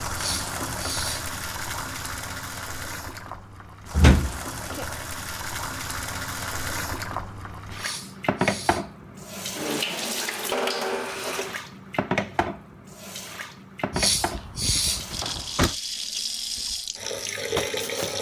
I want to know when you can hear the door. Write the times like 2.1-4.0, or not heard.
3.9-4.8, 13.9-15.8.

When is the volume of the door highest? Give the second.
4 s.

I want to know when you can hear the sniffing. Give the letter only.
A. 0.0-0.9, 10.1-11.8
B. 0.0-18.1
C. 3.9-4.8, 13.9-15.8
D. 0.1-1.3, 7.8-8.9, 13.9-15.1
D.